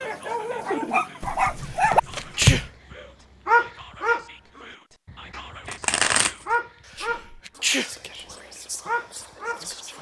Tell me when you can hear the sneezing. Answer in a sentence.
The sneezing can be heard from 1.6 to 2.6 s and from 6.8 to 7.9 s.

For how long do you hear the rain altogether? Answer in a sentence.
You can't hear the rain here.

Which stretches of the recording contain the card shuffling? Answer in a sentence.
The card shuffling can be heard from 1.2 to 2.7 s and from 5.7 to 6.5 s.